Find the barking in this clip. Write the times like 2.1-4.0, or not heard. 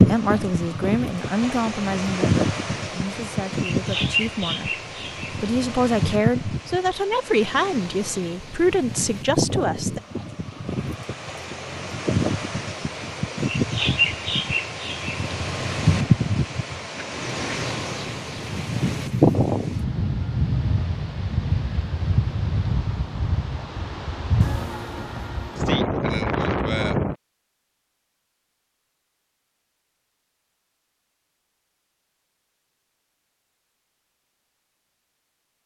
not heard.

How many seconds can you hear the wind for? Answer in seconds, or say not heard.
27 s.